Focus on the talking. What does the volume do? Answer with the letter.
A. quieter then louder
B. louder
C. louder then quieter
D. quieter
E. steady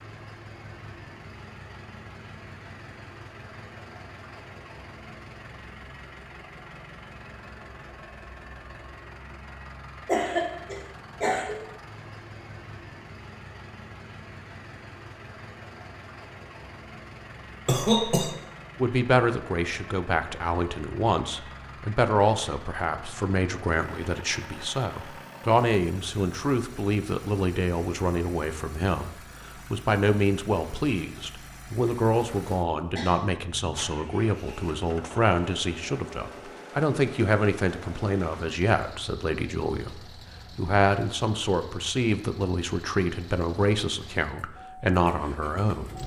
E.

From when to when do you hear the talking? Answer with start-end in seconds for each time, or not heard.
18.8-46.0.